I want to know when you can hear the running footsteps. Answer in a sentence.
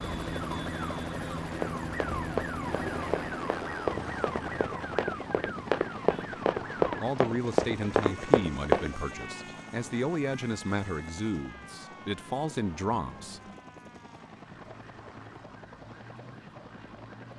The running footsteps can be heard from 1.5 to 8.9 s.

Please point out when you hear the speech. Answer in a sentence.
You can hear the speech from 6.8 to 13.4 s.